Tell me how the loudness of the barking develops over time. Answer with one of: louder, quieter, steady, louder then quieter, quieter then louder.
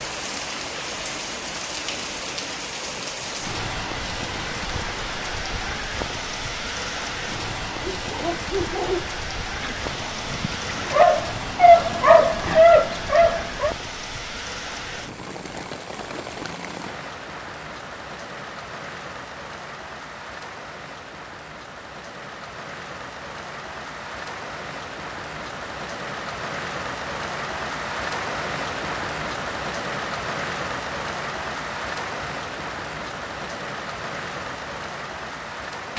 quieter then louder.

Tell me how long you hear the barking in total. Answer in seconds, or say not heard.
6 s.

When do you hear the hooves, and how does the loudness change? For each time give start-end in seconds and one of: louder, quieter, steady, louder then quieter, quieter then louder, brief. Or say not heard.
not heard.